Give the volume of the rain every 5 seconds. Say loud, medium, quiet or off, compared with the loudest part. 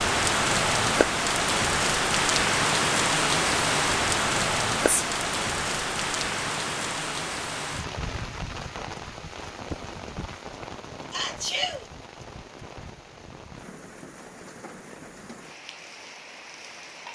loud, medium, quiet, quiet.